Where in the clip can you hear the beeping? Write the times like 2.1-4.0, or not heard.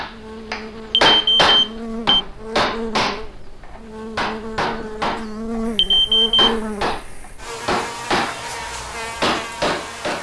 0.9-2.2, 5.8-6.5.